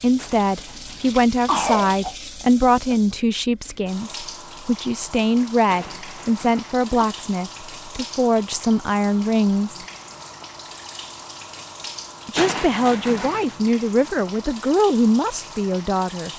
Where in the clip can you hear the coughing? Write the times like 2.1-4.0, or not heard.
0.1-2.1, 5.7-6.9, 12.3-13.6.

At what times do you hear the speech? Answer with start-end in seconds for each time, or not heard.
0.0-9.8, 12.2-16.3.